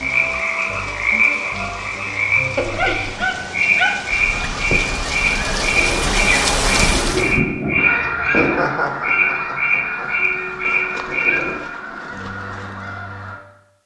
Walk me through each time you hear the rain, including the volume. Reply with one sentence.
You can hear the rain from 0.0 to 7.4 s, getting louder.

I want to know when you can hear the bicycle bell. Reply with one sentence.
You can't hear the bicycle bell here.